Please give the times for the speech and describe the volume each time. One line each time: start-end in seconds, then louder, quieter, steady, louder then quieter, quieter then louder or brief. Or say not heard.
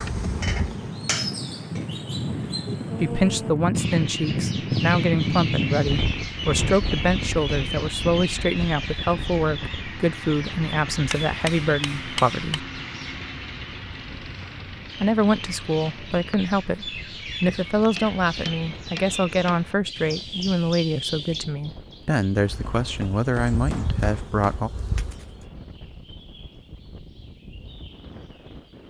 3.0-12.7 steady
15.0-24.7 steady.